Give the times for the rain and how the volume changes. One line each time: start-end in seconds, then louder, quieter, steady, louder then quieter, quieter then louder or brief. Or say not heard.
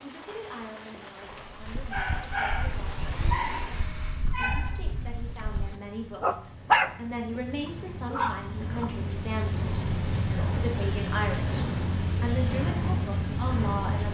0.0-14.1 louder.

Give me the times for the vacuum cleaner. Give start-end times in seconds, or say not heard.
2.2-4.3.